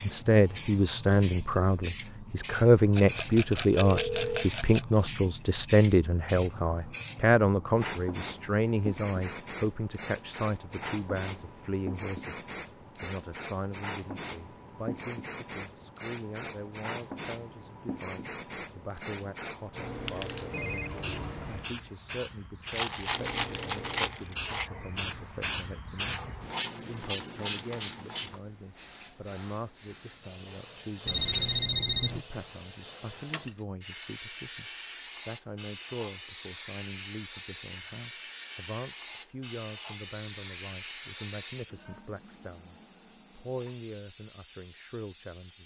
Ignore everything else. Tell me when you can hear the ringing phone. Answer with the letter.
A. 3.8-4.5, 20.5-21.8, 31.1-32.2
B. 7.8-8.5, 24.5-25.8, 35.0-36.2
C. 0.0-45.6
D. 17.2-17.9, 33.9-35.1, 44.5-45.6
A.